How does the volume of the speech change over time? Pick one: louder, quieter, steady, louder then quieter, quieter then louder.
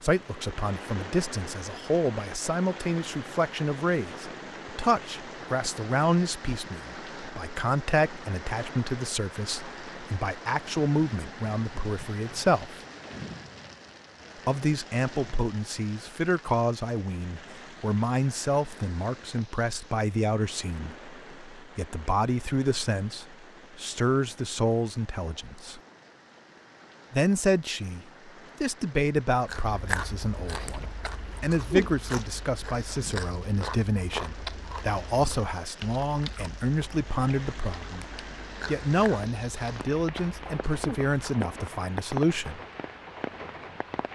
steady.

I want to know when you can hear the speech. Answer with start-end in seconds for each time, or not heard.
0.0-12.8, 14.4-25.8, 27.1-38.0, 38.6-42.6.